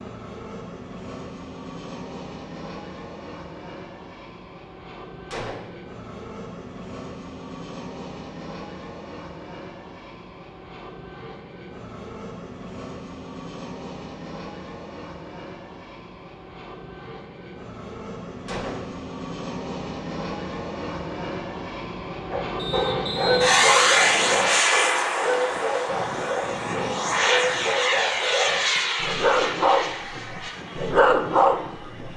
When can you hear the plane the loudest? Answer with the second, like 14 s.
24 s.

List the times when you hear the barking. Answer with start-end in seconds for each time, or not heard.
22.3-32.1.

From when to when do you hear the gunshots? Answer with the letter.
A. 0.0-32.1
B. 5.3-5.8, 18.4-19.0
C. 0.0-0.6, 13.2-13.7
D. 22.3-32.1
B.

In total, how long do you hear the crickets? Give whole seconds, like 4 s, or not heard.
not heard.